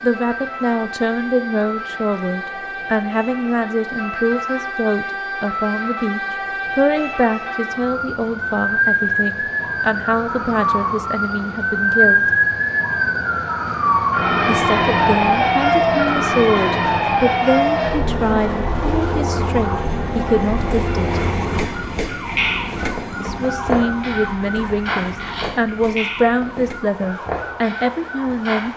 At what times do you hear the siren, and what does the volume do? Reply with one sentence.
You can hear the siren from 0.0 to 28.7 s, getting louder then quieter.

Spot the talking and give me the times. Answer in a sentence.
You can hear the talking from 0.0 to 12.2 s, from 14.4 to 21.2 s and from 23.2 to 28.7 s.